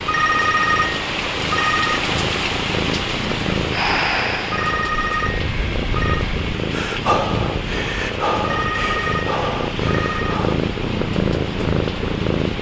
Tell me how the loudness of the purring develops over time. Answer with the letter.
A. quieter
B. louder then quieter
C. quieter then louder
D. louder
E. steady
D.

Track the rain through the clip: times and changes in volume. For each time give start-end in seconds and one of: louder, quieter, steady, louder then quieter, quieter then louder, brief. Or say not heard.
0.0-12.5 quieter.